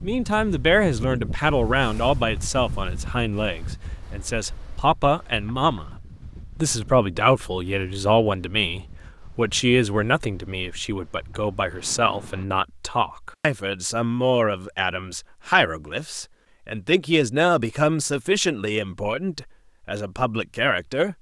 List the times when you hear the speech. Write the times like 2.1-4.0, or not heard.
0.0-5.9, 6.5-21.1.